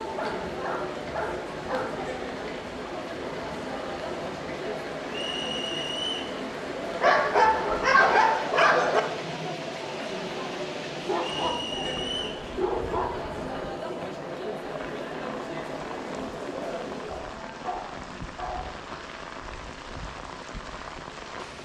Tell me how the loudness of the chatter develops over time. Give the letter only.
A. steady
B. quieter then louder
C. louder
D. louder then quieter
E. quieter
A.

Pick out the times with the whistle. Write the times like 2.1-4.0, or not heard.
5.1-6.3, 11.2-12.4.